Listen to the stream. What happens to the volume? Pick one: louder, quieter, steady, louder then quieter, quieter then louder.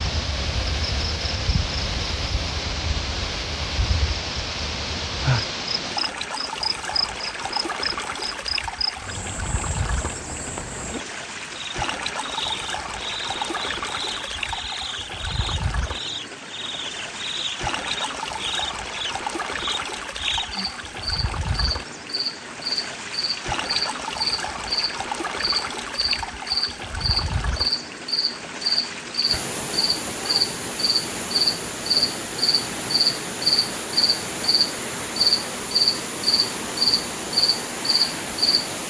steady.